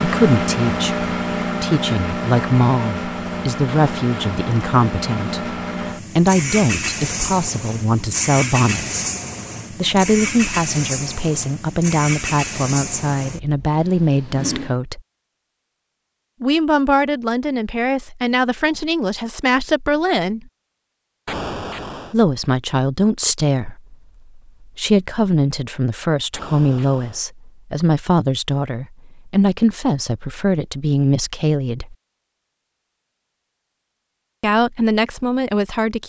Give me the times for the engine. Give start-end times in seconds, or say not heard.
0.0-14.8.